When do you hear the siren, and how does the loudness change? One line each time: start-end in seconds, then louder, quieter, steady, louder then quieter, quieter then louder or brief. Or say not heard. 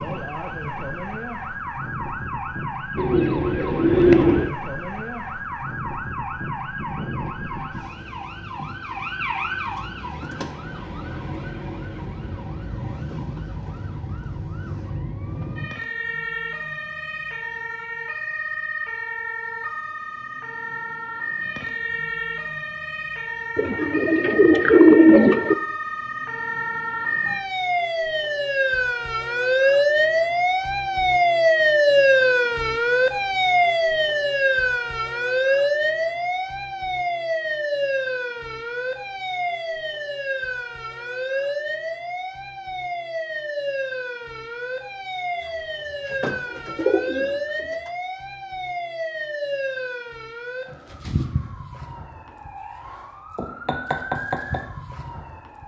0.0-55.6 louder then quieter.